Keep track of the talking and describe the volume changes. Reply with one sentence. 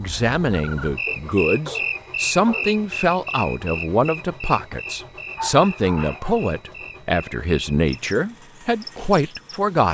The loudness of the talking stays about the same.